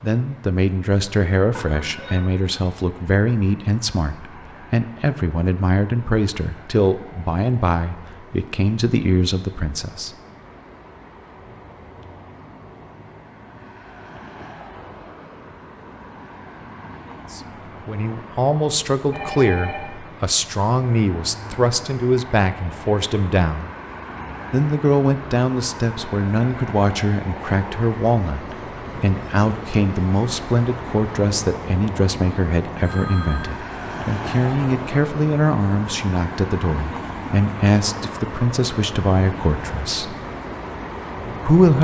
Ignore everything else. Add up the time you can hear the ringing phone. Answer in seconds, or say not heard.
2 s.